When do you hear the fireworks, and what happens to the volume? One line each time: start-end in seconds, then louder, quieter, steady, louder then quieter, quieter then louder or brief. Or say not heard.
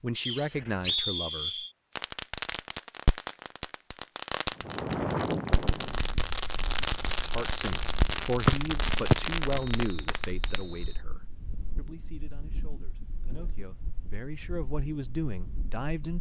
1.9-10.6 steady.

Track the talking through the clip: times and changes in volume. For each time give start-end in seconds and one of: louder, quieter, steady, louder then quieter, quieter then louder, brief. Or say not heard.
0.0-1.6 brief
7.2-16.1 quieter then louder.